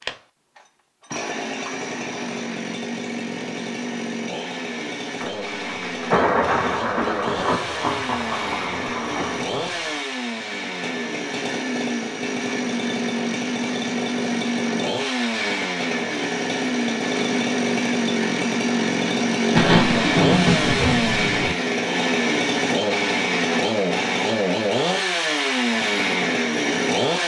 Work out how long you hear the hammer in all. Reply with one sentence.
You can't hear the hammer here.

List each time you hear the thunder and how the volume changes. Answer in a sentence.
You can hear the thunder from 5.2 to 9.9 s, getting quieter; and briefly from 19.6 to 21.6 s.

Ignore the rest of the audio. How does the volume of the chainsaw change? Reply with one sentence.
The loudness of the chainsaw goes up.